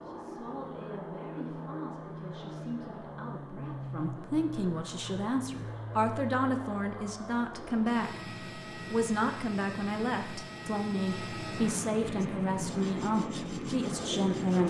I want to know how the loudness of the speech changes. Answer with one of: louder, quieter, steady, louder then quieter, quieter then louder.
louder.